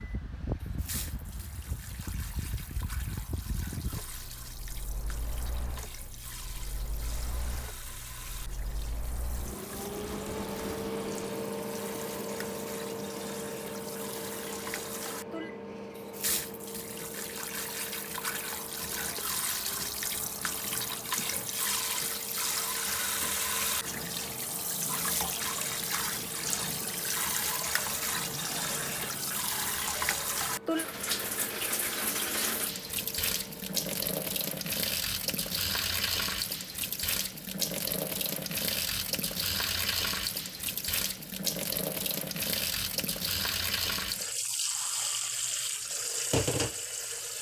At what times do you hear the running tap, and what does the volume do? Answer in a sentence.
You can hear the running tap from 0.2 to 47.3 s, getting louder.